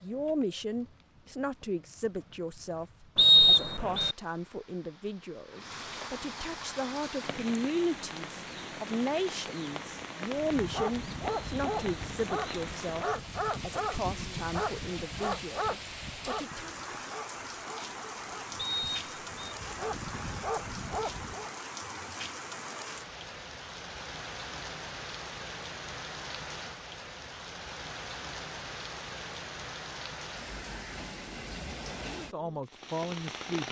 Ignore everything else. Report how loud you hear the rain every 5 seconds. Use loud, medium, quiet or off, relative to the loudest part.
quiet, loud, loud, loud, loud, loud, loud.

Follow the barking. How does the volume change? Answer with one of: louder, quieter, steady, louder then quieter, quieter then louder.
quieter then louder.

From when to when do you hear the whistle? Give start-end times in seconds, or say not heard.
3.1-4.2, 18.6-19.4.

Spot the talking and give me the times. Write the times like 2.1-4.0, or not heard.
0.0-16.7, 32.1-33.6.